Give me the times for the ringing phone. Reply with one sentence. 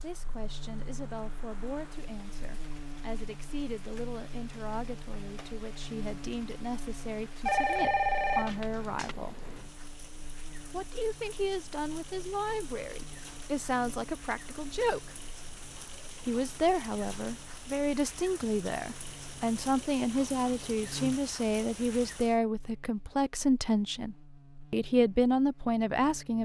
The ringing phone can be heard from 7.5 to 9.2 s.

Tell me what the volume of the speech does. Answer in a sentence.
The loudness of the speech goes up.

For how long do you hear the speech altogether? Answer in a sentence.
The speech can be heard for 24 seconds in total.